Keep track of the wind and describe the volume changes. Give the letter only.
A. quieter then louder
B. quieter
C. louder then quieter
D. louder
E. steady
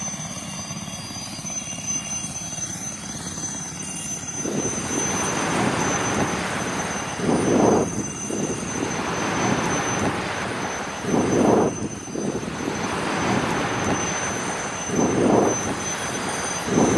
E.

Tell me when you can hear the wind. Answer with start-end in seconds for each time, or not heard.
4.3-16.9.